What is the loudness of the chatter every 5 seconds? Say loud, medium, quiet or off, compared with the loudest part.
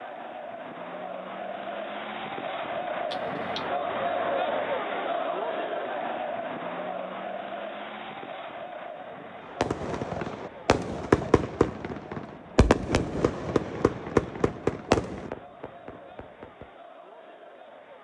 loud, loud, quiet, quiet.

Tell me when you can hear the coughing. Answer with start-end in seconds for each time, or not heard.
3.1-3.7.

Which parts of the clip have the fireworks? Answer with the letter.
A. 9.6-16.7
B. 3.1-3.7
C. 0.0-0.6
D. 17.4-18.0
A.